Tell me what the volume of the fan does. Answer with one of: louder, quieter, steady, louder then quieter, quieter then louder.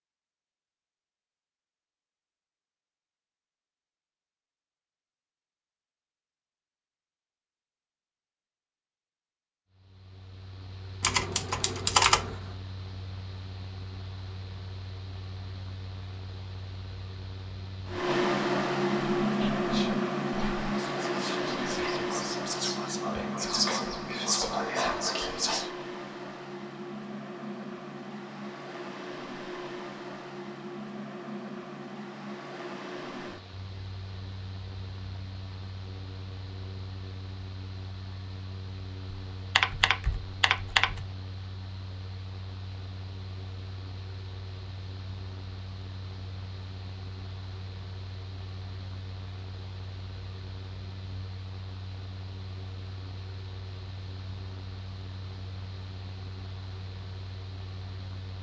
quieter.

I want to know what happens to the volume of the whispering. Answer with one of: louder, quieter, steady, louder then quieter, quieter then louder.
louder.